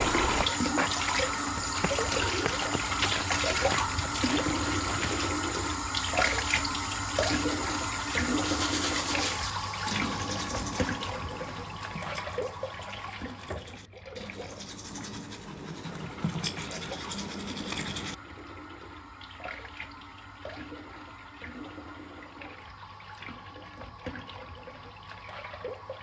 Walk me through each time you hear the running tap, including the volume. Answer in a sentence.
You can hear the running tap from 0.0 to 25.9 s, getting quieter.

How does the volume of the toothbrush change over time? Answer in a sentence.
The loudness of the toothbrush goes down, then up.